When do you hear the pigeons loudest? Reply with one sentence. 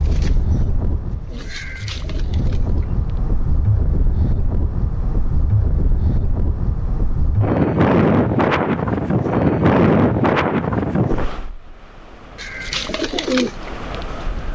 The volume of the pigeons peaks at 13 seconds.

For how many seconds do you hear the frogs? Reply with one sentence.
The frogs can't be heard in this clip.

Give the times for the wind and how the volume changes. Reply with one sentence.
You can hear the wind from 0.0 to 14.5 s, getting louder then quieter.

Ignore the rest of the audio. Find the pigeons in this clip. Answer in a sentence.
The pigeons can be heard from 0.0 to 3.0 s and from 12.3 to 14.5 s.